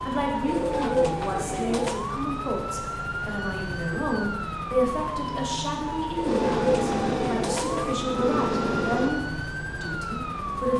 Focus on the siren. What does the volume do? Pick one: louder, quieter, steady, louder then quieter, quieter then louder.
steady.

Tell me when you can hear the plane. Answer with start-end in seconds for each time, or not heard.
6.2-9.1.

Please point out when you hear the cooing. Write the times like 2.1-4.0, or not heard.
0.5-2.0, 6.2-8.0.